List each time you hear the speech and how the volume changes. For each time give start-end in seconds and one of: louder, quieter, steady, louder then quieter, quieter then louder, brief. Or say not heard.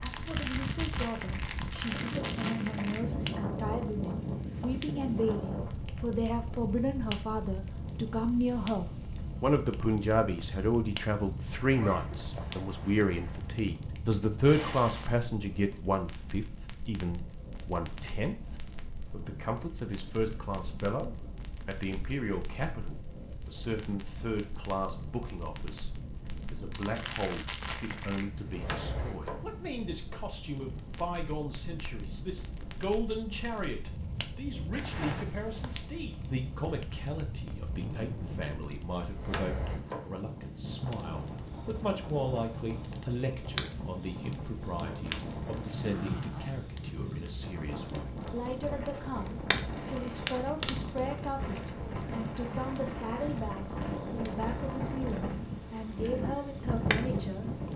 0.0-25.9 louder then quieter
26.5-57.6 steady.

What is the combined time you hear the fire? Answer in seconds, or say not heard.
58 s.